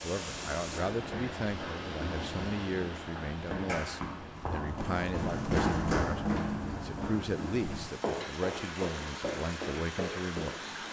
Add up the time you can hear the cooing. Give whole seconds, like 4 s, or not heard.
not heard.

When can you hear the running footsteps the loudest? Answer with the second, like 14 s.
6 s.